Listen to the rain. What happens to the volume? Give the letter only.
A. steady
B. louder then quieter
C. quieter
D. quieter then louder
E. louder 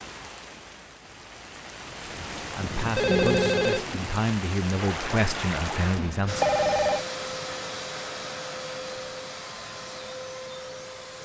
E.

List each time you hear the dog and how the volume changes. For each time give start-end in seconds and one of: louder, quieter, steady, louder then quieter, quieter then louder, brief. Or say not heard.
not heard.